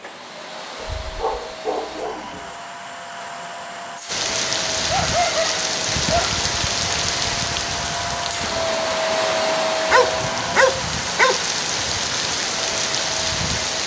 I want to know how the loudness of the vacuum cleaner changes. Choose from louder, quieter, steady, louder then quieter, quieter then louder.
louder then quieter.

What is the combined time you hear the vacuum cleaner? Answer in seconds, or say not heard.
14 s.